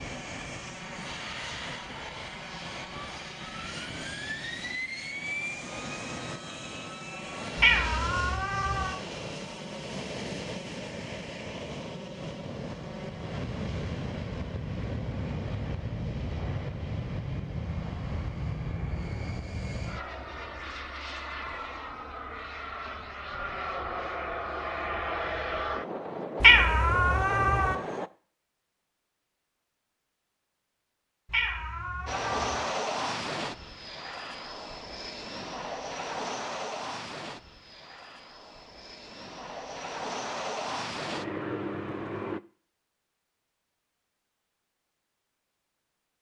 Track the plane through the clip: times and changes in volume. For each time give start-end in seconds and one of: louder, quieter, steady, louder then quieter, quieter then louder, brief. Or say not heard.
0.0-28.1 steady
32.0-42.4 quieter then louder.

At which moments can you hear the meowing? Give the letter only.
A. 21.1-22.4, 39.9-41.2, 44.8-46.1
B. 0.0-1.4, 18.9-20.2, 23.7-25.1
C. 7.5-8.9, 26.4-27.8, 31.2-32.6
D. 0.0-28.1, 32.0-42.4
C.